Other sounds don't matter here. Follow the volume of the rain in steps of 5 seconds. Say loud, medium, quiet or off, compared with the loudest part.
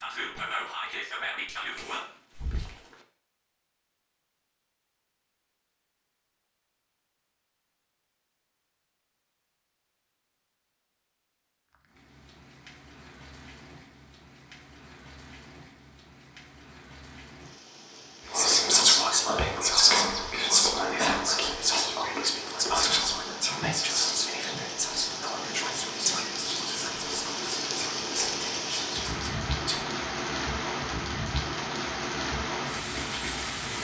off, off, quiet, quiet, medium, loud, loud.